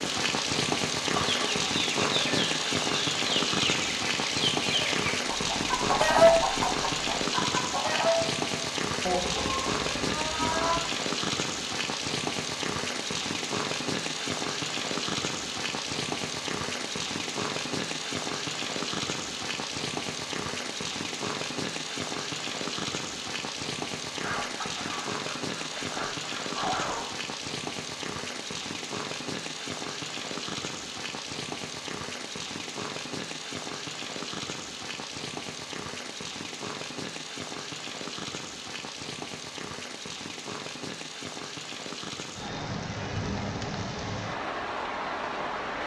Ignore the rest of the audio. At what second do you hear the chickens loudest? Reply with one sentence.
The volume of the chickens peaks at 6 seconds.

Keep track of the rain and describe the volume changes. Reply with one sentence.
The loudness of the rain goes down.